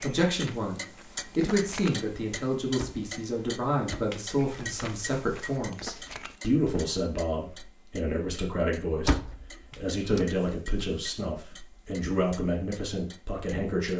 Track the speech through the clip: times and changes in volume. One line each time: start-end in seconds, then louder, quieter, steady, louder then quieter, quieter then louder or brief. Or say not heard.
0.0-13.9 steady.